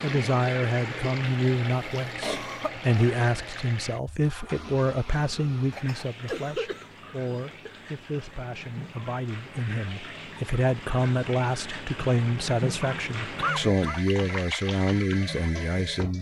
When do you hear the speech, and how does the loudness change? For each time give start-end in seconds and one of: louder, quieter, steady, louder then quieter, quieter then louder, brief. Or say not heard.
0.0-16.1 quieter then louder.